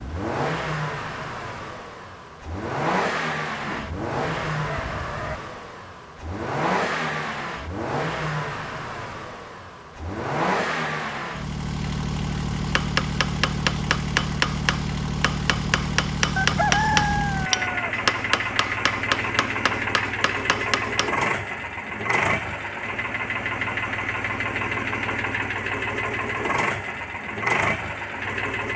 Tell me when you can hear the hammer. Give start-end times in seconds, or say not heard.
12.7-21.1.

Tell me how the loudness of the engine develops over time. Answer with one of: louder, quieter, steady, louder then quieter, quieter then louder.
steady.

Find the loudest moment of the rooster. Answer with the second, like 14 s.
17 s.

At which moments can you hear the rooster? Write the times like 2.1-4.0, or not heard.
3.6-5.4, 16.4-17.9.